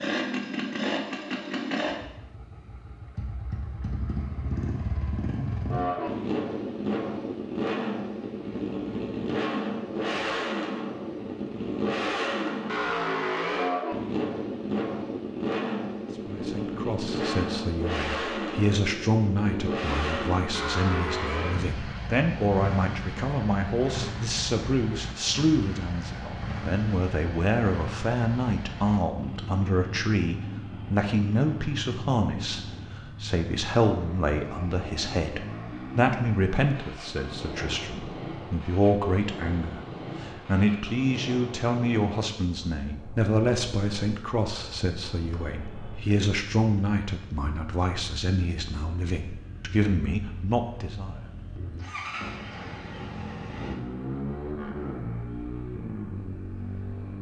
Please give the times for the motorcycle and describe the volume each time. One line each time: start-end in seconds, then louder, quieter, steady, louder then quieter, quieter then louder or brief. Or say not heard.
0.0-57.1 quieter.